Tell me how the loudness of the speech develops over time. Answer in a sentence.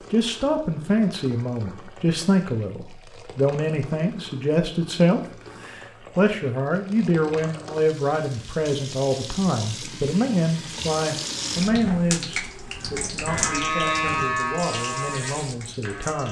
The volume of the speech goes down.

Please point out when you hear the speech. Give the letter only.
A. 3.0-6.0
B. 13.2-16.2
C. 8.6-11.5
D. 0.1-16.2
D.